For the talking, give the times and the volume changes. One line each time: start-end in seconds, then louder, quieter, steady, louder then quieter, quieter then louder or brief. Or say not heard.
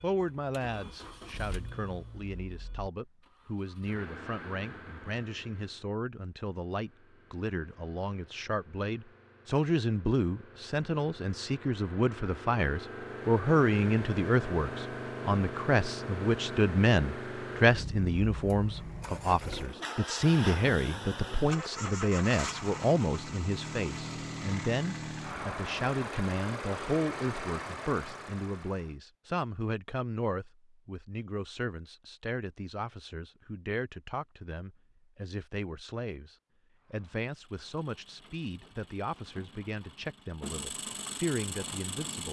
0.0-42.2 louder then quieter.